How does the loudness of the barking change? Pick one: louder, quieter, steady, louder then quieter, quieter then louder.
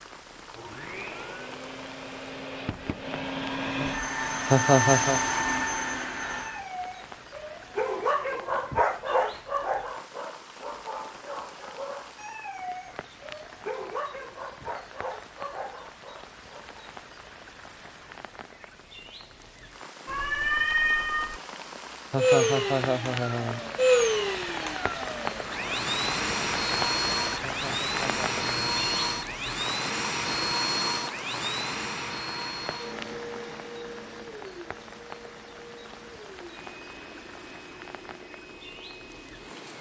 quieter.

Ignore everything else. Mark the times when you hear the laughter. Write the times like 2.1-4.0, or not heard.
4.5-5.2, 22.1-23.6, 27.4-28.8.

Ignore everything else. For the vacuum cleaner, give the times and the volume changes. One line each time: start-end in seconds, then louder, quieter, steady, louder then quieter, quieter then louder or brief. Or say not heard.
0.0-6.7 louder
22.1-39.7 quieter.